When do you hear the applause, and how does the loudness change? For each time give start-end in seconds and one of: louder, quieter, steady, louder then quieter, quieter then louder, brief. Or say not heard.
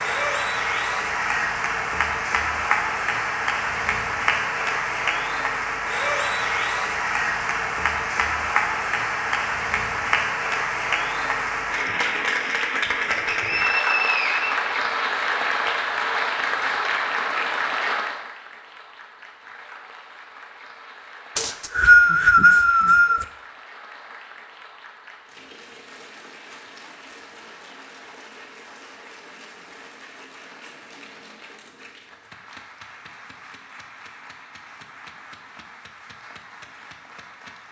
0.0-37.6 quieter.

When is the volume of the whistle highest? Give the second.
22 s.